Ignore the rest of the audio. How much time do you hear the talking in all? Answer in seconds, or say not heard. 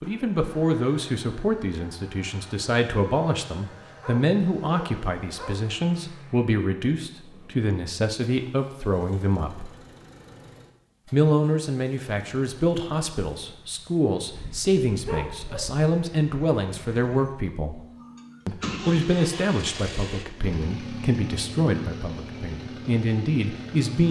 22 s.